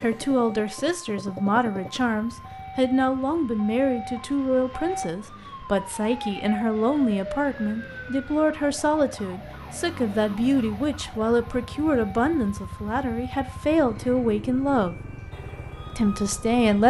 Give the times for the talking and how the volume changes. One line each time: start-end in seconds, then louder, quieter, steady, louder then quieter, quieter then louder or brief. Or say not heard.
0.0-14.9 steady
15.9-16.8 brief.